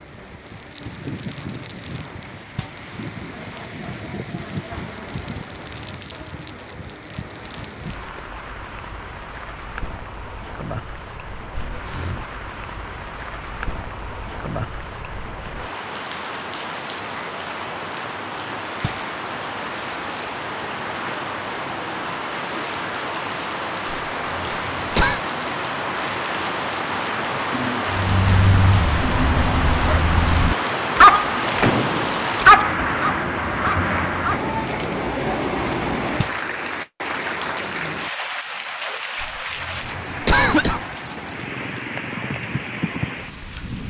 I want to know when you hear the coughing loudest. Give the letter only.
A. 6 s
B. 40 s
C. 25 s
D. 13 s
B.